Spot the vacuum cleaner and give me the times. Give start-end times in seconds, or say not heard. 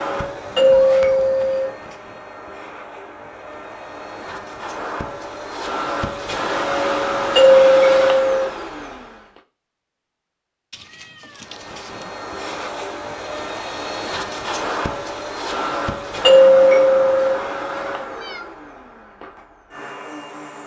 0.0-9.4, 11.3-20.6.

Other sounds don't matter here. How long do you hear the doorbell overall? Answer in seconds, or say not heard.
3 s.